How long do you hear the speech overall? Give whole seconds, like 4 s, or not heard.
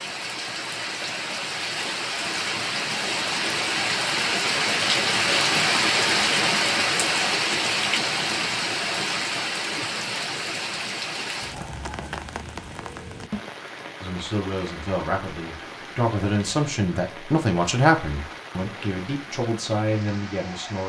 7 s.